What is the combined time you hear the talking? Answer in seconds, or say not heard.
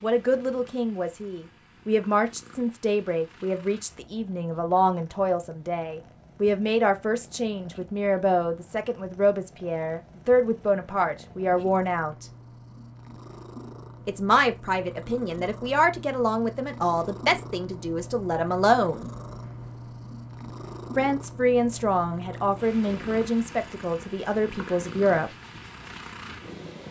22 s.